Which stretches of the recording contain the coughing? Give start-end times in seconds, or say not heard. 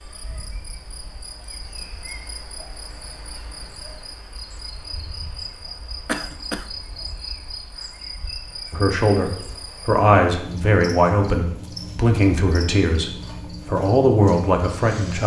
6.0-6.7.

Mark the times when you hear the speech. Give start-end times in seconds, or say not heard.
8.7-15.2.